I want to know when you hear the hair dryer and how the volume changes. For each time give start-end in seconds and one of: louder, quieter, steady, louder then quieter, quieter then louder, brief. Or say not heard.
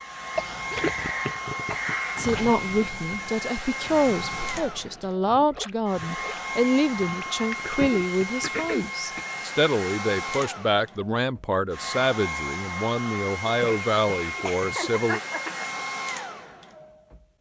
0.0-17.3 steady.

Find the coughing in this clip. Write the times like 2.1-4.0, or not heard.
0.3-2.2, 7.8-9.2, 13.4-15.8.